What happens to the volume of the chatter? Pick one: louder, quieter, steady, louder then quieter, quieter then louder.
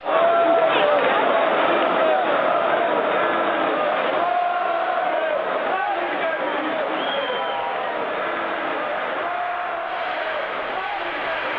quieter.